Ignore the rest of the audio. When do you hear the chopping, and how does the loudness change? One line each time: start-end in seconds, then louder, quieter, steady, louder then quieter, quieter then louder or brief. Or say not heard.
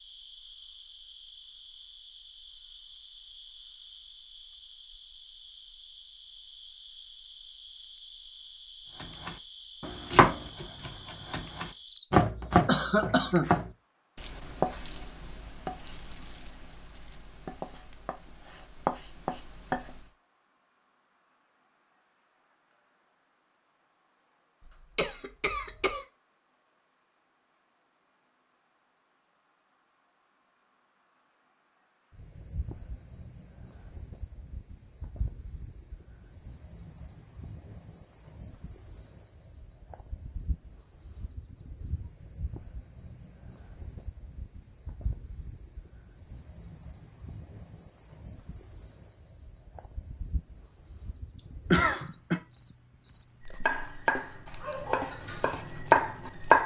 9.0-20.1 quieter then louder
53.6-56.6 brief.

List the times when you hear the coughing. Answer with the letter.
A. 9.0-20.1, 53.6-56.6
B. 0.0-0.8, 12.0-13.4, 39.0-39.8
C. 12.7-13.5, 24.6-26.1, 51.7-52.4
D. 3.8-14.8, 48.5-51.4
C.